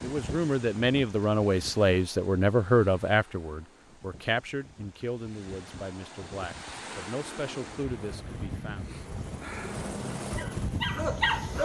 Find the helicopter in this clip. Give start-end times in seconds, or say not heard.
7.8-11.6.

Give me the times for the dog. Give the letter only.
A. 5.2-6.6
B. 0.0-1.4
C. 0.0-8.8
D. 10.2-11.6
D.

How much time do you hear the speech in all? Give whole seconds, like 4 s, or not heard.
9 s.